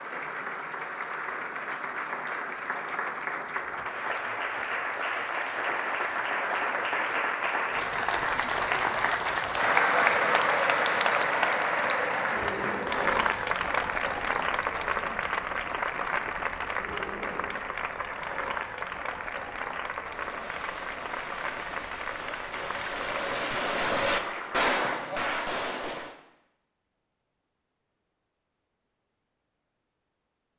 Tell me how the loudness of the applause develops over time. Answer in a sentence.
The loudness of the applause goes up, then down.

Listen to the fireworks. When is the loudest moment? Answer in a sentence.
The loudest moment of the fireworks is at 25 seconds.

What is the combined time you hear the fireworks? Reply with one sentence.
The fireworks can be heard for 6 seconds in total.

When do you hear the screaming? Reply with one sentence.
The screaming can be heard from 12.3 to 13.3 s and from 16.8 to 17.6 s.